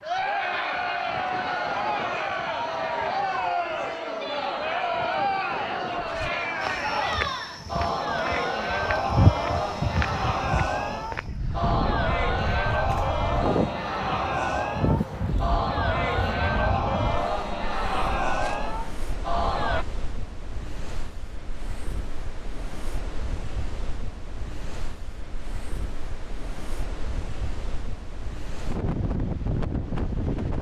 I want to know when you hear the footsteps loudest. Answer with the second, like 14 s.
9 s.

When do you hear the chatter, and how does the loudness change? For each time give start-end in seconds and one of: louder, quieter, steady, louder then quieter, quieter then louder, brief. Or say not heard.
0.0-19.9 steady.